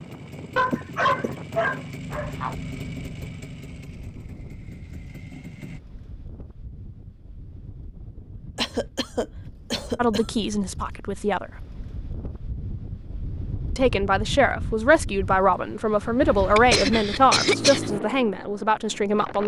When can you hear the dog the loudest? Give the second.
1 s.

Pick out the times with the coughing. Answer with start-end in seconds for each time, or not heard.
0.7-1.3, 8.6-10.4, 16.6-17.9.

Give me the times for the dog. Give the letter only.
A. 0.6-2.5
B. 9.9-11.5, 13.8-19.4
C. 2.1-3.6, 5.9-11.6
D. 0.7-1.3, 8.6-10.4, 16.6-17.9
A.